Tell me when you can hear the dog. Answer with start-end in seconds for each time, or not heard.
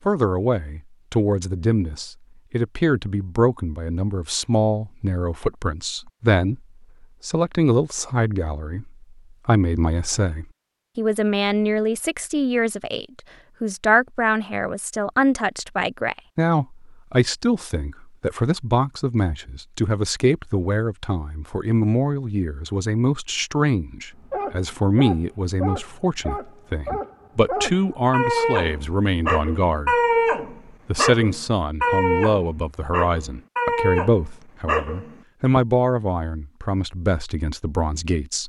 24.2-35.6.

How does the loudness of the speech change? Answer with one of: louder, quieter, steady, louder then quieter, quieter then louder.
steady.